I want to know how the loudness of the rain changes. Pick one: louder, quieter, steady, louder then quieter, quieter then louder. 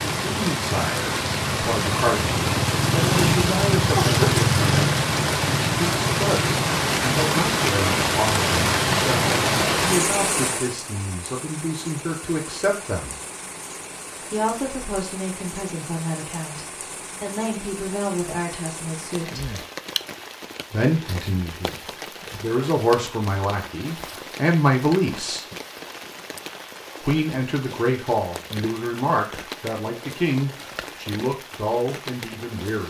quieter.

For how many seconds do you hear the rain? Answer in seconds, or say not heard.
33 s.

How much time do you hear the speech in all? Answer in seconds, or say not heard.
29 s.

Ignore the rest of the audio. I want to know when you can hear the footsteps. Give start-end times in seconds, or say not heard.
not heard.